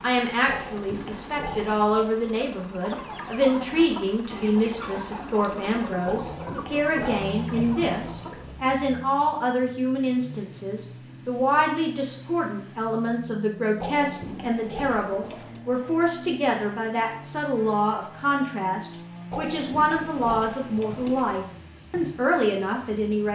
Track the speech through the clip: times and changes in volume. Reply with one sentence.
The speech can be heard from 0.0 to 23.3 s, at a steady volume.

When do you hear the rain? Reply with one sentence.
You can't hear the rain here.